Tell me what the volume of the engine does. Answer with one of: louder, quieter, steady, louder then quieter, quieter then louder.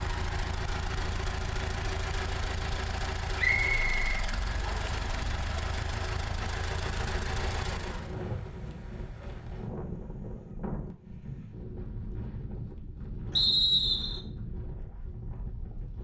steady.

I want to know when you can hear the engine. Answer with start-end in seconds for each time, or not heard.
0.0-8.2.